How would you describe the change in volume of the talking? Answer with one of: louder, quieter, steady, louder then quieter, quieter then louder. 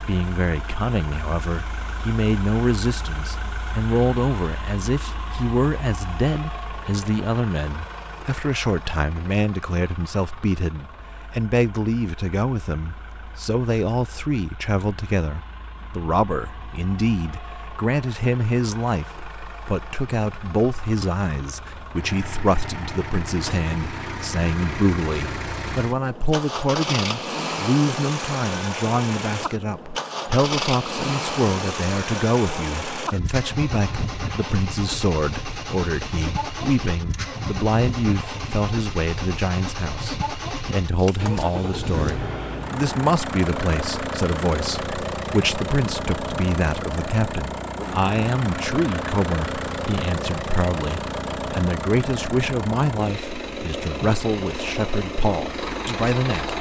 steady.